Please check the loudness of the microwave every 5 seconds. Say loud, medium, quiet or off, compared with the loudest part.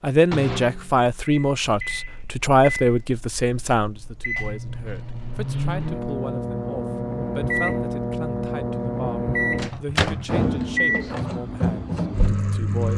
medium, loud, loud.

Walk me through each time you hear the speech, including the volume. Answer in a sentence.
The speech can be heard from 0.0 to 12.9 s, getting quieter.